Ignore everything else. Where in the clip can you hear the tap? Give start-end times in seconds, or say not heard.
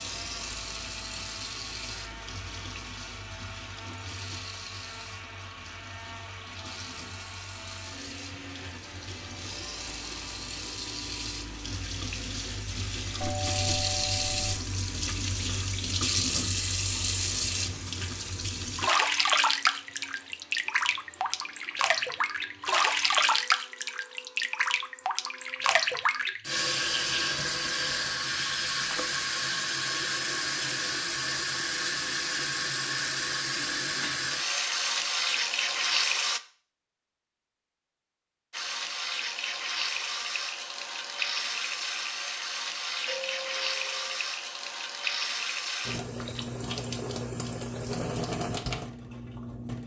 0.0-36.4, 38.5-49.8.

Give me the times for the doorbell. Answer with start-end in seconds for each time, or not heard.
13.2-14.6, 43.0-44.2.